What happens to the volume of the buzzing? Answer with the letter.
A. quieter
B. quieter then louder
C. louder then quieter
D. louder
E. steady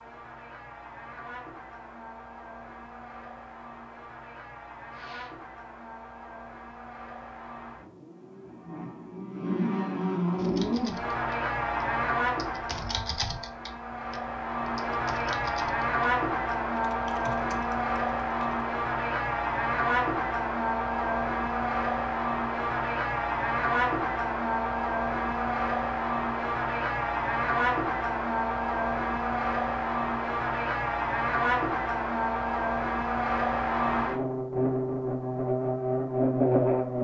D.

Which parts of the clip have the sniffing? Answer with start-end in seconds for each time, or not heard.
4.9-5.3.